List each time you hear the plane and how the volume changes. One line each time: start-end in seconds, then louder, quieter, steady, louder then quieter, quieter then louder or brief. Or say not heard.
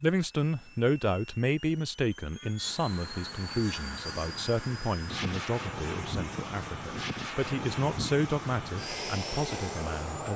0.0-10.3 louder.